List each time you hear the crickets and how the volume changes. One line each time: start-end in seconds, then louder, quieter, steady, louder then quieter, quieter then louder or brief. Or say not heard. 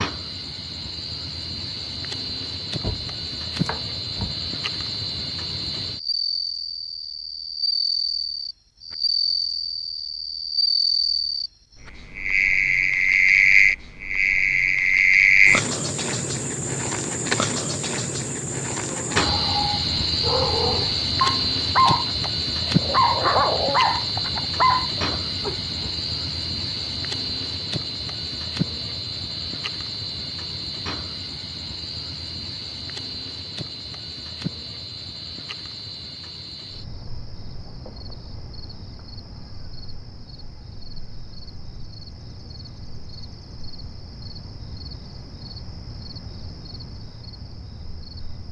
0.0-48.4 louder then quieter.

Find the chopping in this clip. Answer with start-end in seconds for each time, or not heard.
2.8-4.3.